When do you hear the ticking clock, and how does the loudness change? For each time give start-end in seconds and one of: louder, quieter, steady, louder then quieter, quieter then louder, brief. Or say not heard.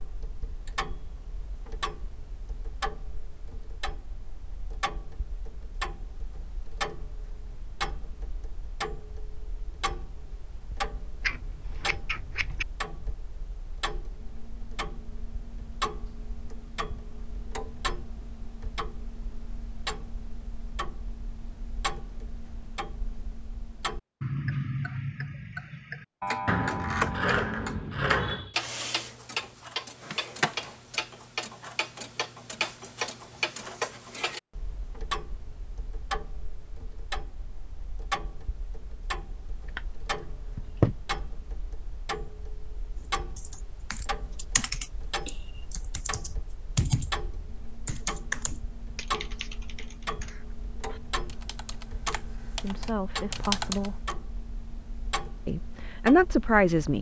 0.0-56.9 louder then quieter.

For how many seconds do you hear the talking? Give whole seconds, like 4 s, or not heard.
3 s.